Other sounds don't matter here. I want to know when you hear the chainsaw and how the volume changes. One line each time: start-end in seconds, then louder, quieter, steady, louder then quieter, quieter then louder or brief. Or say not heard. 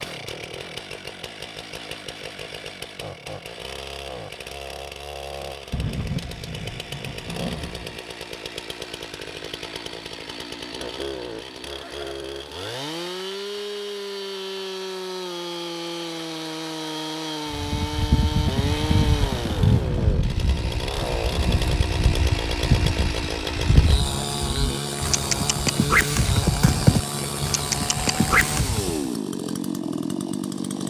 0.0-30.8 louder.